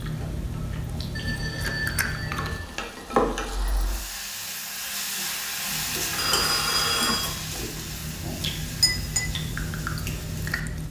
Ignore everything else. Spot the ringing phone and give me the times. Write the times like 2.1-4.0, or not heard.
1.1-2.8, 6.1-7.3.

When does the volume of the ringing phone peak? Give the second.
7 s.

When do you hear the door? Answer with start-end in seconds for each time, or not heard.
not heard.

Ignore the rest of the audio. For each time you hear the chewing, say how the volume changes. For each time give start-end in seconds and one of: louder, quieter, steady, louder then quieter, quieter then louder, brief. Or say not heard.
0.0-2.6 brief
5.7-10.8 louder.